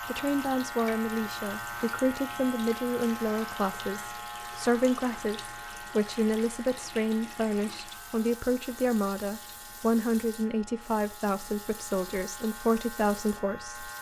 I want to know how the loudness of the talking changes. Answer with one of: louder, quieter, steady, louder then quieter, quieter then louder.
steady.